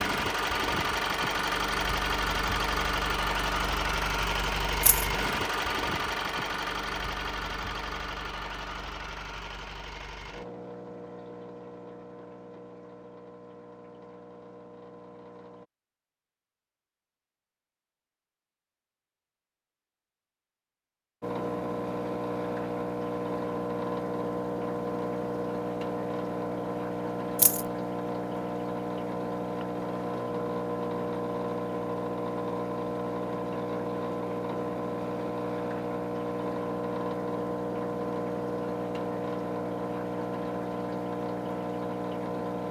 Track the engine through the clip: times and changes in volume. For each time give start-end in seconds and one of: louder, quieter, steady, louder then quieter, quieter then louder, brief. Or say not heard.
0.0-15.7 quieter
21.2-42.6 steady.